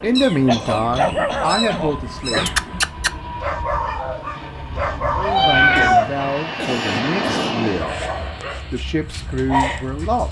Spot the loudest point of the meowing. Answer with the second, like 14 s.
6 s.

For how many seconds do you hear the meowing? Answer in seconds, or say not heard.
4 s.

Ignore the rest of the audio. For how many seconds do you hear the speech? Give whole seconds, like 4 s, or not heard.
7 s.